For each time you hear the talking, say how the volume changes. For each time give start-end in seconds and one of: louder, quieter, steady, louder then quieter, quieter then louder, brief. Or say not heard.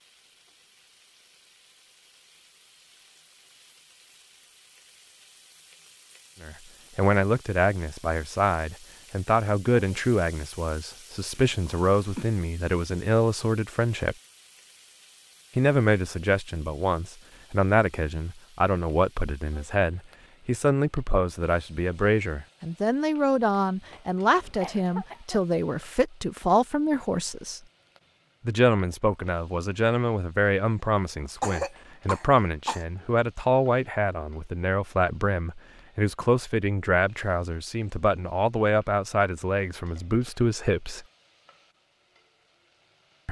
6.4-14.2 steady
15.6-27.6 steady
28.4-41.0 steady.